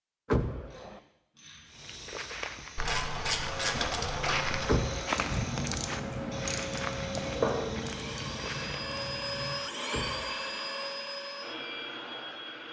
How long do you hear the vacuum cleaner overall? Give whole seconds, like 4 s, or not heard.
9 s.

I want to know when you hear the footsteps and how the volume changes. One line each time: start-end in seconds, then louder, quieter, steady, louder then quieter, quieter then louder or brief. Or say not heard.
1.6-8.8 louder then quieter.